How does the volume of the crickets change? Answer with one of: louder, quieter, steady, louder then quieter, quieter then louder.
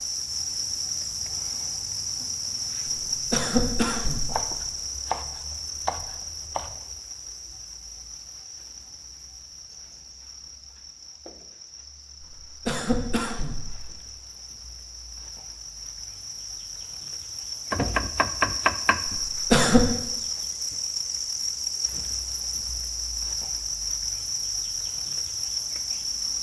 quieter then louder.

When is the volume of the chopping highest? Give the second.
19 s.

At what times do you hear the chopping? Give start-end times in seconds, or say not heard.
4.3-6.8, 17.7-19.2.